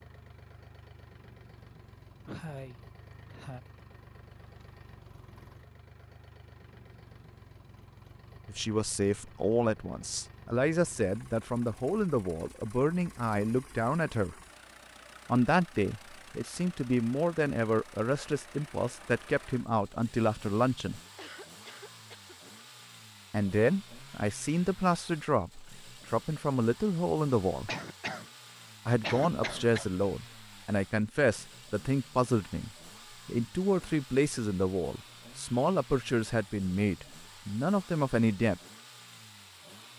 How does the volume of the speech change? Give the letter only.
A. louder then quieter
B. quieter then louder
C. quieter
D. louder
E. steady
E.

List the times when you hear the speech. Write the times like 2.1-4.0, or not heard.
8.4-14.3, 15.2-21.0, 23.3-27.7, 28.9-38.6.